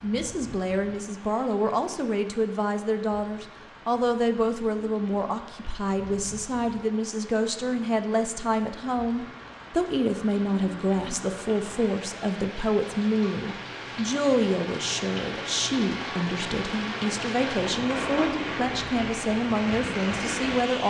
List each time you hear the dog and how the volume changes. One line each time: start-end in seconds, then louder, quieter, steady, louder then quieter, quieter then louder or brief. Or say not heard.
not heard.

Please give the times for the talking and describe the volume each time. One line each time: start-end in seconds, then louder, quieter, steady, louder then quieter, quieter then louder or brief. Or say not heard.
0.0-20.8 steady.